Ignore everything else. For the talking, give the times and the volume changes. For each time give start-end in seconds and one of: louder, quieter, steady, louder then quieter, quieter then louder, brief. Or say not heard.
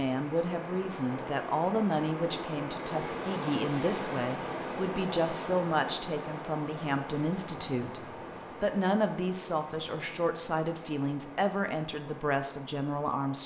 0.0-13.4 steady.